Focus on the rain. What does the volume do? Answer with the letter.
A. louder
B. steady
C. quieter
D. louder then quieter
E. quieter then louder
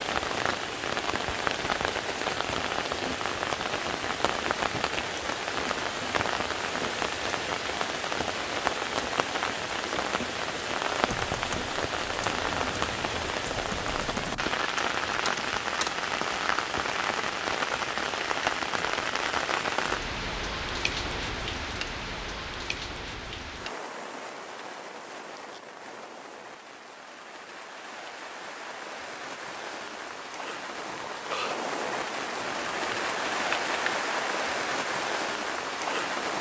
E.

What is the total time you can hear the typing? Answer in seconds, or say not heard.
7 s.